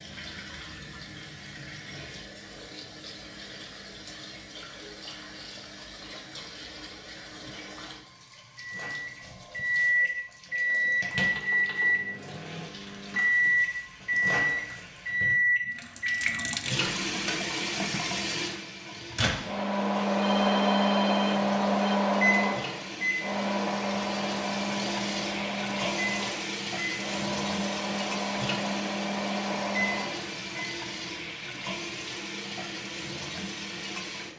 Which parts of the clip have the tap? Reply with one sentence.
The tap can be heard from 0.0 to 34.3 s.